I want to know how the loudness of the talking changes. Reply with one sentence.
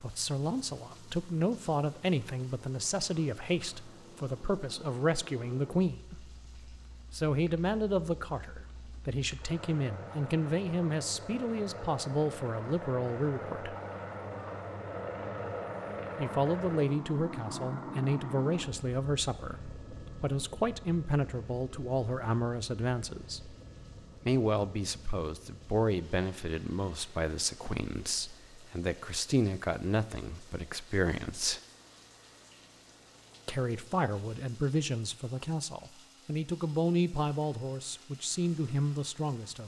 The loudness of the talking stays about the same.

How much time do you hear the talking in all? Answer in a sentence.
You can hear the talking for 34 seconds altogether.